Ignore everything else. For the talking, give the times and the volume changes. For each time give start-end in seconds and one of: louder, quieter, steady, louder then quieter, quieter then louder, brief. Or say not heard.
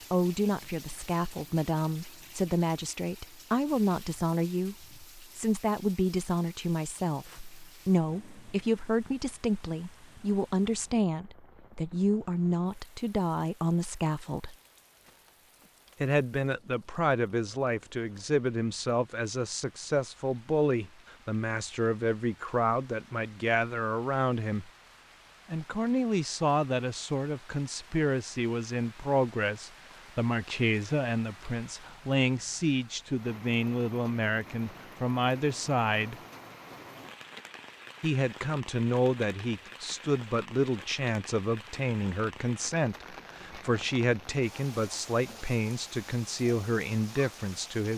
0.1-14.6 steady
16.0-24.7 steady
25.5-36.1 steady
38.0-47.9 steady.